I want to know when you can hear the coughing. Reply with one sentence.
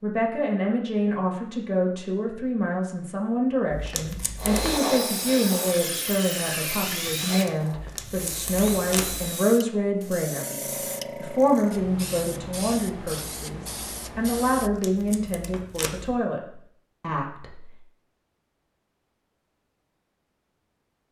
You can't hear the coughing here.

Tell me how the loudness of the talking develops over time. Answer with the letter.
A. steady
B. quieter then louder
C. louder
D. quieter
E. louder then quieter
A.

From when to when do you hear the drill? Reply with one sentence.
You can hear the drill from 4.3 to 9.6 s.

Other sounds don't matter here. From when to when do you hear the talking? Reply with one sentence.
The talking can be heard from 0.0 to 17.7 s.